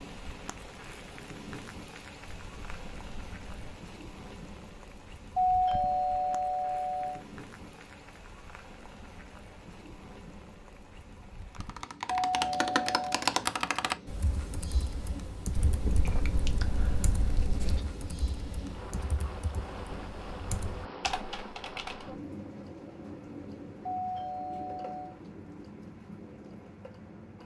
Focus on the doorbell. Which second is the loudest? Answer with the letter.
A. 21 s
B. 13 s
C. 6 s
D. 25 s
C.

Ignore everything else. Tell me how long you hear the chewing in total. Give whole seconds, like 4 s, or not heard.
4 s.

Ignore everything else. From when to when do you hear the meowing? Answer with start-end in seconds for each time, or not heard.
not heard.